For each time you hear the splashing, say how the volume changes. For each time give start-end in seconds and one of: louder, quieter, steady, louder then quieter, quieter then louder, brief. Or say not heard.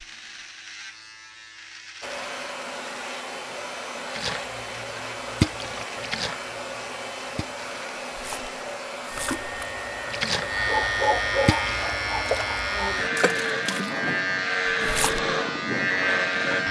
4.2-14.0 quieter then louder
14.8-15.3 brief.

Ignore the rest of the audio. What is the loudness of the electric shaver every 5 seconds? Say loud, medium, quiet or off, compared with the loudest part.
quiet, quiet, loud, loud.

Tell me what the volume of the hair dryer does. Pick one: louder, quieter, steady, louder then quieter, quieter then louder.
steady.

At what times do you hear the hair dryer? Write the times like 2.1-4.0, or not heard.
2.0-13.1.